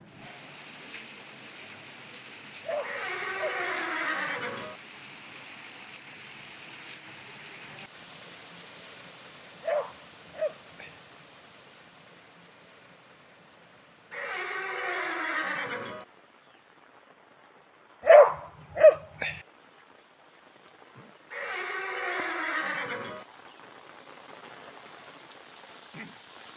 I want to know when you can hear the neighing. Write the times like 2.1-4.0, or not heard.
2.8-4.8, 14.1-16.1, 21.3-23.2.